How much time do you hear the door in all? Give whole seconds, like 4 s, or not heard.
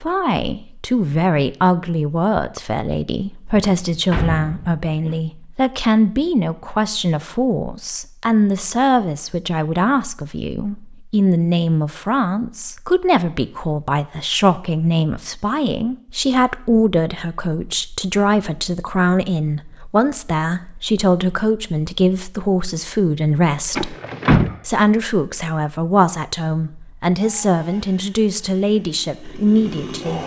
3 s.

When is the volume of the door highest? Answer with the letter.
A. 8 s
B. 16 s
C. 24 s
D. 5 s
C.